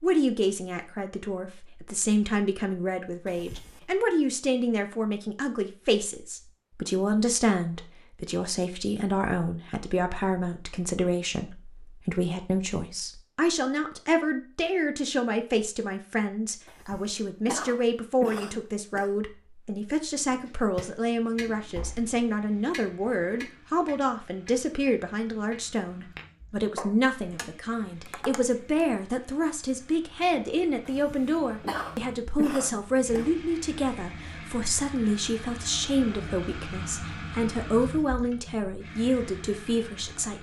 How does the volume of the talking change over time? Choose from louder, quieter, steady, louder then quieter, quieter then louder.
steady.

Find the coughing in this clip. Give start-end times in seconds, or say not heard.
3.2-4.0, 16.6-19.1, 30.9-33.3.